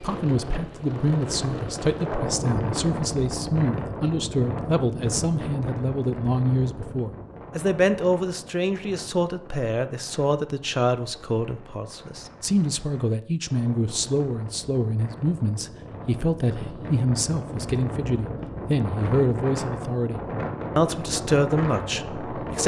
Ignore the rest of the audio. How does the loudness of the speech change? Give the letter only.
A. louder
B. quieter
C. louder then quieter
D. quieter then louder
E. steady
E.